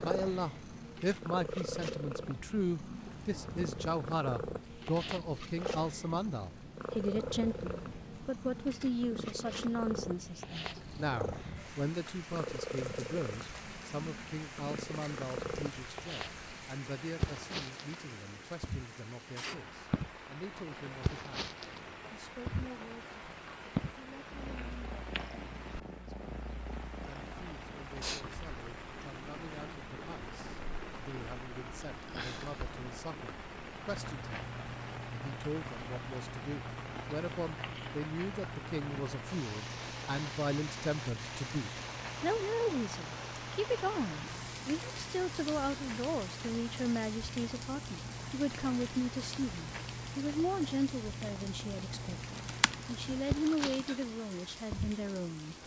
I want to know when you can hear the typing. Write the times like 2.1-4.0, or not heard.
52.4-54.0.